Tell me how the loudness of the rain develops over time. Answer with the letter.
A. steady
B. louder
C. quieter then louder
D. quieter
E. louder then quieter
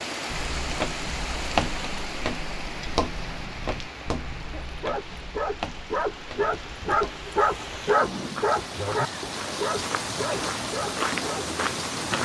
C.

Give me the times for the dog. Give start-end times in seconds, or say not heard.
4.6-11.6.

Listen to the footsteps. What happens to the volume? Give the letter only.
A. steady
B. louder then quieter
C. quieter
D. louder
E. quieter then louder
E.